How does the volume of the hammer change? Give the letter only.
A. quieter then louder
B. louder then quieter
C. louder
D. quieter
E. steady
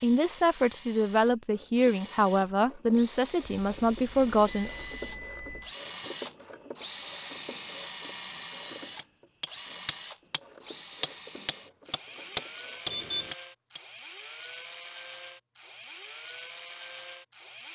A.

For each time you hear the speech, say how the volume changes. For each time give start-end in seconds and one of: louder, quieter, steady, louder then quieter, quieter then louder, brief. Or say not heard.
0.0-4.7 steady.